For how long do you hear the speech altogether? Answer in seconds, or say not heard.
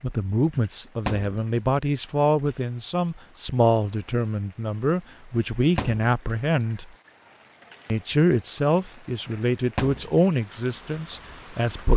11 s.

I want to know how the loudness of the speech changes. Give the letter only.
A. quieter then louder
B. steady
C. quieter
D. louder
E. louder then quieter
B.